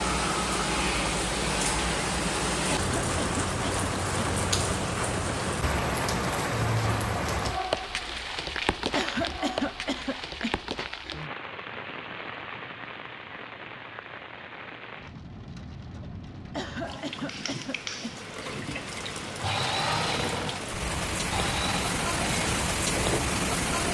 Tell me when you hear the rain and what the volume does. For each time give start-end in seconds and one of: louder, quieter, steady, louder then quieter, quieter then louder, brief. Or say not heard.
0.0-23.8 quieter then louder.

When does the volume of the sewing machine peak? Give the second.
20 s.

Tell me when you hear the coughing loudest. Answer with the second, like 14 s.
9 s.